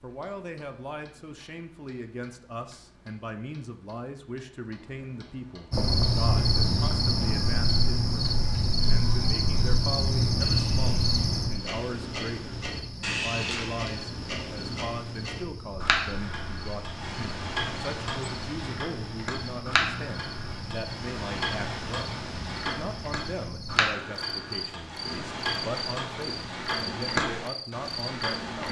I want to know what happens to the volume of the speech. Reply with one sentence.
The volume of the speech stays about the same.